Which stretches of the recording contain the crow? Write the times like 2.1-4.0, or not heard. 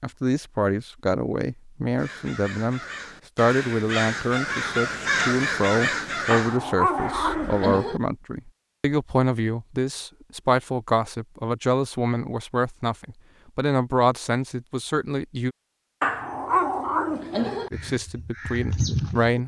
1.9-7.8, 17.7-19.4.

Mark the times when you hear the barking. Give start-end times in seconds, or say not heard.
6.3-8.0, 16.0-17.7.